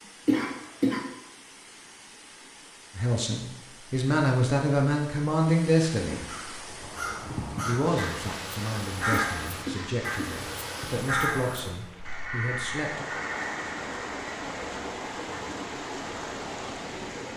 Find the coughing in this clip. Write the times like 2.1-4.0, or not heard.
0.2-1.0, 9.1-10.4.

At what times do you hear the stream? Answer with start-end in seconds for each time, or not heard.
0.0-17.3.